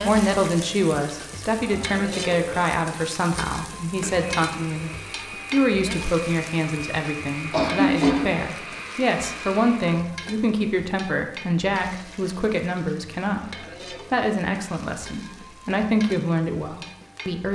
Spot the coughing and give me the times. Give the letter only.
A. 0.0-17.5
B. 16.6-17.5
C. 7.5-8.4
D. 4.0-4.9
C.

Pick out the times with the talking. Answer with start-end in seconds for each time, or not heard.
0.0-17.5.